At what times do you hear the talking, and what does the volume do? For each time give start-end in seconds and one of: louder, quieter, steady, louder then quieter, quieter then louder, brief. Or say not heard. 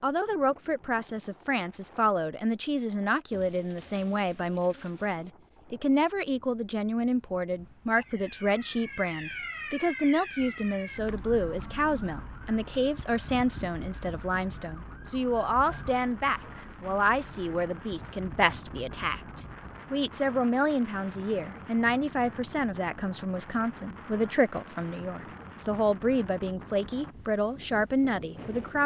0.0-28.8 steady.